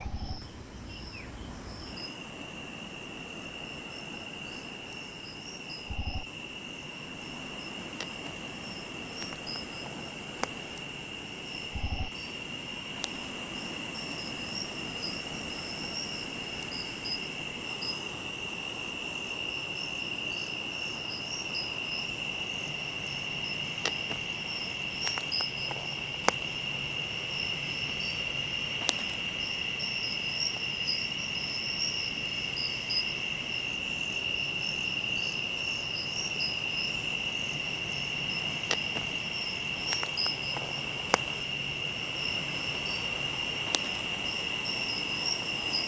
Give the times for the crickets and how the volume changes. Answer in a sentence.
You can hear the crickets from 0.0 to 45.8 s, getting louder.